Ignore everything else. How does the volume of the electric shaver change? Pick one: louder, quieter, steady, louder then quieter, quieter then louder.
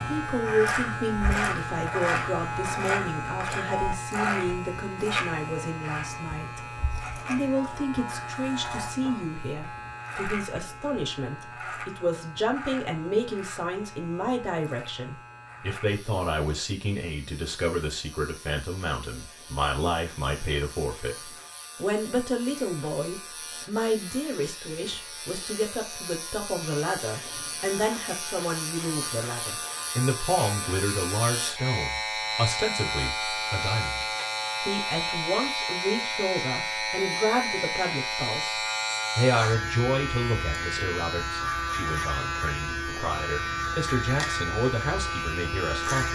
quieter then louder.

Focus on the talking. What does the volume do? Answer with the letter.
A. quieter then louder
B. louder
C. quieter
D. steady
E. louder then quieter
D.